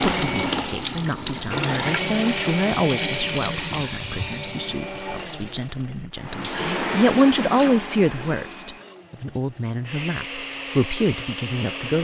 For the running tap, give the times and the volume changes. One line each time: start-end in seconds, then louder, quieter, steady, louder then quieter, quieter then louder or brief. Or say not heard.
0.0-4.8 steady
6.2-8.9 brief.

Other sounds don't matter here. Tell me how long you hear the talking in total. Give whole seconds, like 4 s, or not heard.
12 s.